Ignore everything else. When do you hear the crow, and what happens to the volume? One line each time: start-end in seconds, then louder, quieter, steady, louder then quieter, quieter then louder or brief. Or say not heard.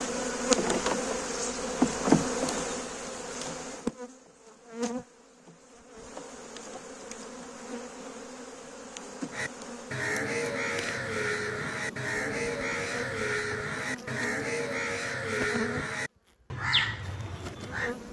9.3-17.9 steady.